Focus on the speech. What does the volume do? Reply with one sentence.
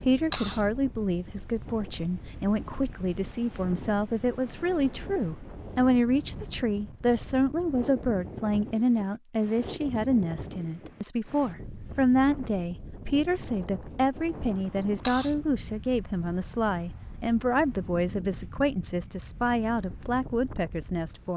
The volume of the speech stays about the same.